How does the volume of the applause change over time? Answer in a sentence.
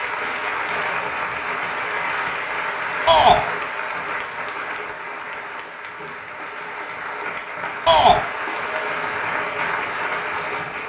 The volume of the applause goes down, then up.